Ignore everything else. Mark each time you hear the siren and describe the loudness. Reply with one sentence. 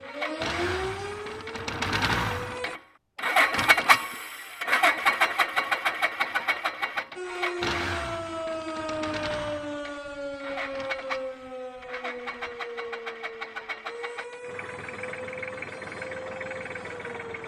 You can hear the siren briefly from 0.0 to 2.8 s; and from 7.2 to 17.4 s, getting quieter.